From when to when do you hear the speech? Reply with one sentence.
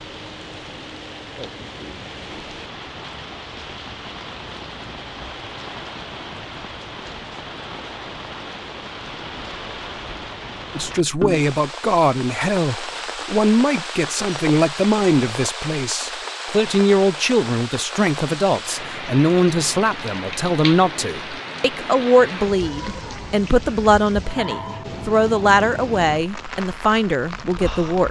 You can hear the speech from 10.8 to 28.0 s.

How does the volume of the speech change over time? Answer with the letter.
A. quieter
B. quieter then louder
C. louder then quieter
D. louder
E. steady
E.